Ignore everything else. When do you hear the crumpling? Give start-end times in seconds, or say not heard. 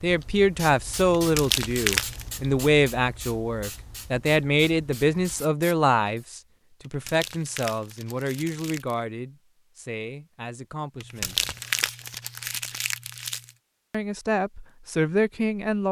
1.1-2.2, 6.8-8.9, 11.0-13.5.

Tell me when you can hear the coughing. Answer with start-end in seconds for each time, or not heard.
not heard.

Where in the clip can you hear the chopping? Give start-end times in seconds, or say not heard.
not heard.